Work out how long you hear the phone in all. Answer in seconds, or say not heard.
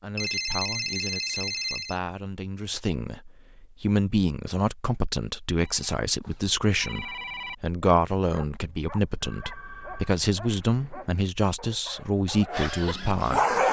5 s.